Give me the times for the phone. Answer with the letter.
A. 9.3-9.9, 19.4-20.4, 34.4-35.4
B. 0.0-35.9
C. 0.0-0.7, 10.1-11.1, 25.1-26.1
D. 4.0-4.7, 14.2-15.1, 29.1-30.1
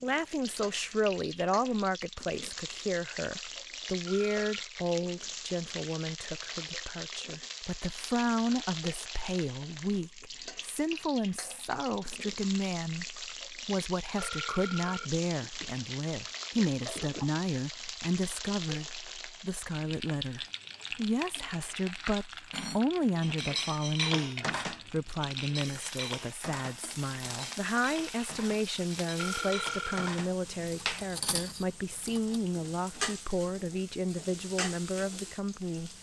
D.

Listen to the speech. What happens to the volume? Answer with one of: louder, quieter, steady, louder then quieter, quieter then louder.
steady.